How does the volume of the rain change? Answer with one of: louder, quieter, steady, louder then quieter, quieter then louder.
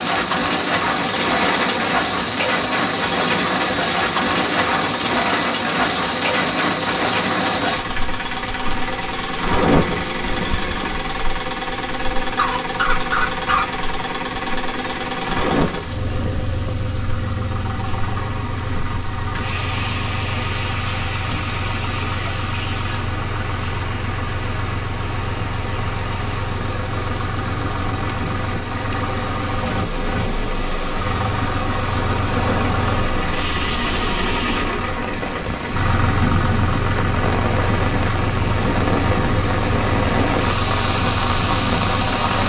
quieter then louder.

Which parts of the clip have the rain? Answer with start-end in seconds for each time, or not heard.
0.0-42.4.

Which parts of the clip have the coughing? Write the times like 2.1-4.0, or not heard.
12.3-13.7.